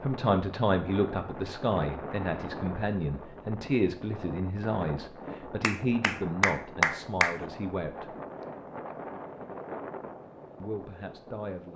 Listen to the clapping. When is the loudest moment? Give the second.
7 s.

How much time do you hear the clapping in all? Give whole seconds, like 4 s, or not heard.
2 s.